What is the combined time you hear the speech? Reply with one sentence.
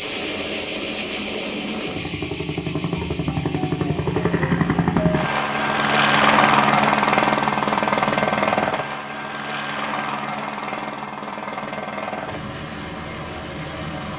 The speech can't be heard in this clip.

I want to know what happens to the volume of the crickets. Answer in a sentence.
The loudness of the crickets goes down.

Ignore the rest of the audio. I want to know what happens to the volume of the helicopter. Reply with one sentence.
The volume of the helicopter goes up, then down.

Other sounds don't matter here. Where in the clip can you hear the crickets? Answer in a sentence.
You can hear the crickets from 0.0 to 8.8 s.